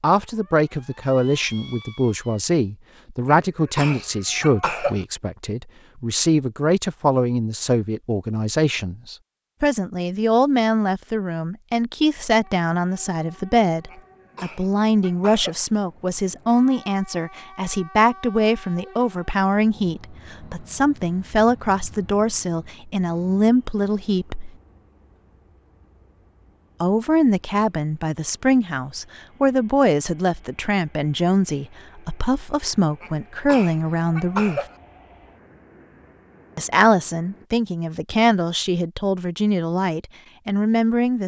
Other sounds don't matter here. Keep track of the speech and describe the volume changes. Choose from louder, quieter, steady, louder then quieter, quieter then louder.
steady.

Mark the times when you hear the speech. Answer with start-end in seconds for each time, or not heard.
0.0-24.5, 26.8-34.6, 36.5-41.2.